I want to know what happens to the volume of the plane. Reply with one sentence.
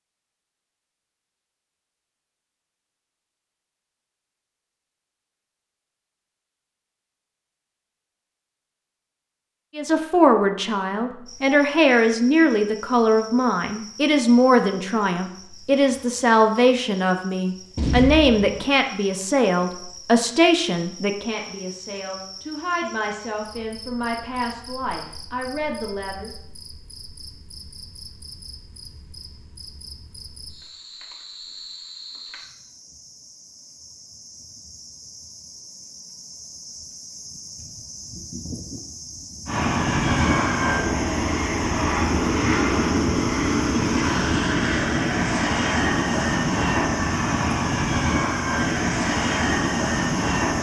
The volume of the plane stays about the same.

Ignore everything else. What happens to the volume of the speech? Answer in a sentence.
The loudness of the speech goes down.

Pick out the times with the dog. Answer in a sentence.
You can't hear the dog here.